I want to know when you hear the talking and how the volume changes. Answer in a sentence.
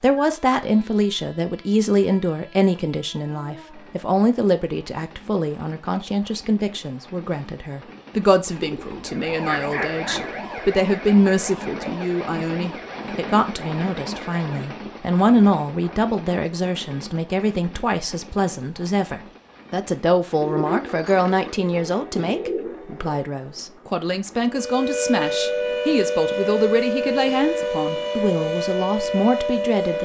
The talking can be heard from 0.0 to 29.9 s, at a steady volume.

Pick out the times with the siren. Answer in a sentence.
You can hear the siren from 8.9 to 14.9 s and from 24.4 to 29.9 s.